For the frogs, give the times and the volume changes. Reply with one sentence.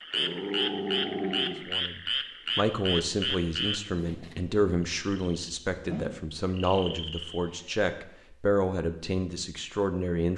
You can hear the frogs from 0.0 to 7.7 s, getting quieter then louder.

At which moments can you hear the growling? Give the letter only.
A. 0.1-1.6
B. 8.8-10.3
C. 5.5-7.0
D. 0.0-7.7
A.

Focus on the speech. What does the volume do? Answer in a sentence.
The volume of the speech stays about the same.